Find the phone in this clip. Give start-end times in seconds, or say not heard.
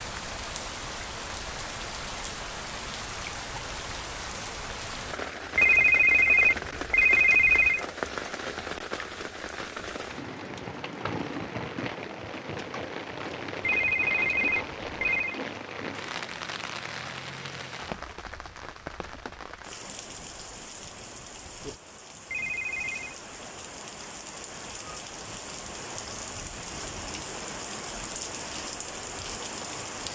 5.5-7.8, 13.6-15.4, 22.3-23.1.